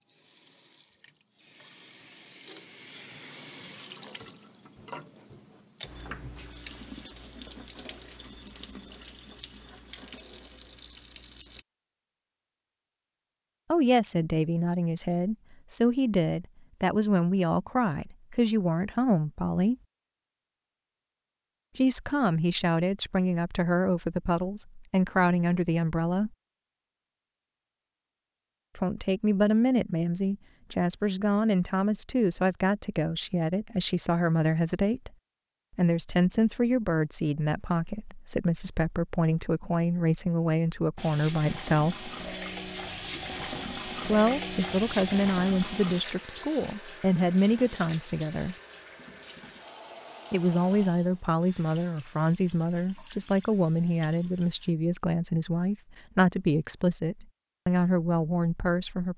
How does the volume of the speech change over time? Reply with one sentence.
The loudness of the speech stays about the same.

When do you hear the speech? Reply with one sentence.
The speech can be heard from 13.7 to 19.8 s, from 21.8 to 26.3 s, from 28.8 to 35.1 s, from 35.8 to 42.1 s, from 44.0 to 48.5 s and from 50.3 to 59.1 s.